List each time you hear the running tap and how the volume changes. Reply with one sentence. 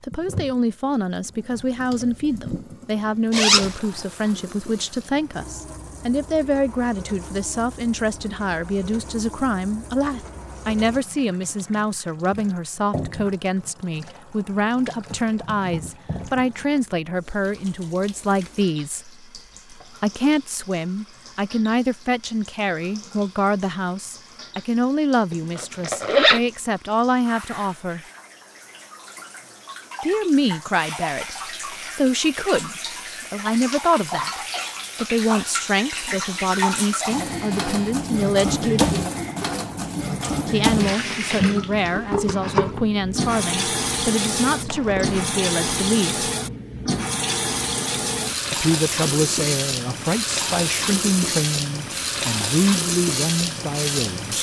You can hear the running tap from 0.1 to 54.3 s, getting louder.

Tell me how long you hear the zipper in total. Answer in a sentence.
The zipper can be heard for 2 seconds in total.